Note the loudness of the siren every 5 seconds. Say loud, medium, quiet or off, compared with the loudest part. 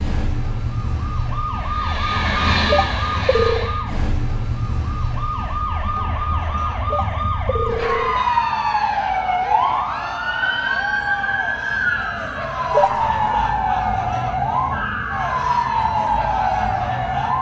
medium, loud, loud, loud.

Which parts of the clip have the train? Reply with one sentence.
You can hear the train from 1.6 to 3.9 s.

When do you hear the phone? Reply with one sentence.
The phone can be heard from 2.7 to 3.7 s, from 6.9 to 8.2 s and from 12.7 to 13.1 s.